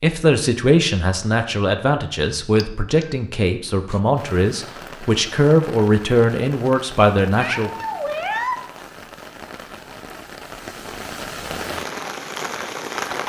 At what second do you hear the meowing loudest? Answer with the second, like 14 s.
8 s.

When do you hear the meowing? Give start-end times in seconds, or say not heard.
2.5-3.1, 7.3-8.7.